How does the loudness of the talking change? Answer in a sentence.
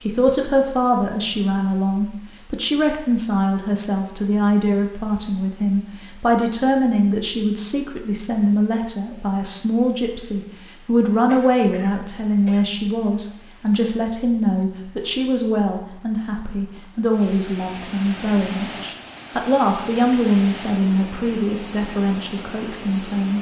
The volume of the talking stays about the same.